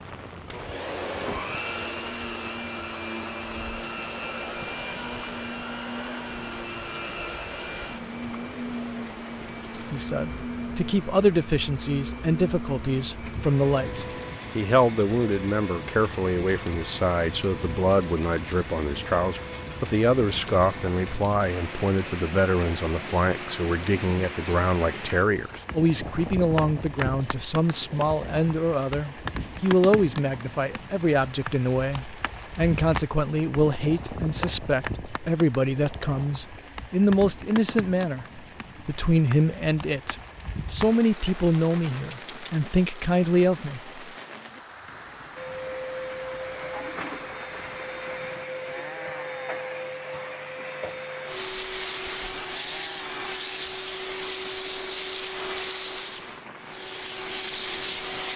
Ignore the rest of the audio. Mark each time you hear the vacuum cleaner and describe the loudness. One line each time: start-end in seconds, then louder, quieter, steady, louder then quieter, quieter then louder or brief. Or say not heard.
0.0-24.6 quieter
45.4-58.3 steady.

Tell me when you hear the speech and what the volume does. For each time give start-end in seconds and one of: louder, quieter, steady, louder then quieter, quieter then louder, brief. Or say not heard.
9.7-43.9 steady.